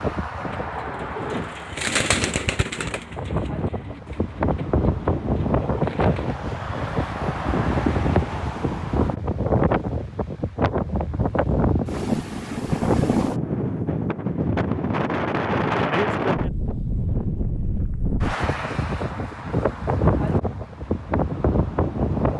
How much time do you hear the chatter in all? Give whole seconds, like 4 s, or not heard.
not heard.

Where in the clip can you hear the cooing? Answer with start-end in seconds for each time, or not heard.
0.5-6.4.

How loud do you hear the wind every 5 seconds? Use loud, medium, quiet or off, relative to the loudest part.
medium, loud, loud, loud, loud.